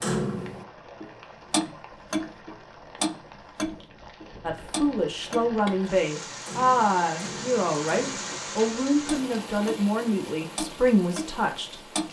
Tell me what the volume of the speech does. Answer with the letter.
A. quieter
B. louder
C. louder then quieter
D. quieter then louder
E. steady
E.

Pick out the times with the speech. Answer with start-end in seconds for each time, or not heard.
4.4-11.9.